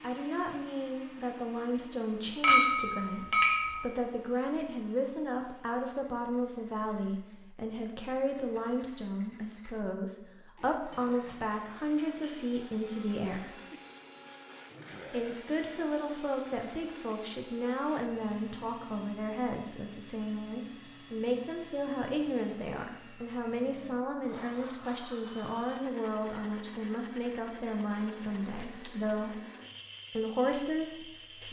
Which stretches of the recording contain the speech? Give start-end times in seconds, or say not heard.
0.0-13.6, 15.1-29.4, 30.1-31.4.